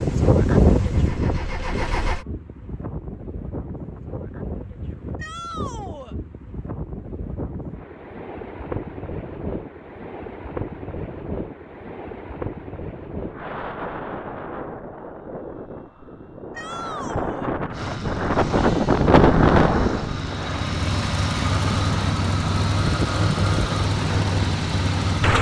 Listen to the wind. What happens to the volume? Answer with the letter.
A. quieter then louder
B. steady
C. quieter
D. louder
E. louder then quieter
A.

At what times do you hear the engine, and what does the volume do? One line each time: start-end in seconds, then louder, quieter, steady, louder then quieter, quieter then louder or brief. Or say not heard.
0.0-2.2 brief
17.7-25.3 louder.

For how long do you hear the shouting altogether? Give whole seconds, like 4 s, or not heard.
2 s.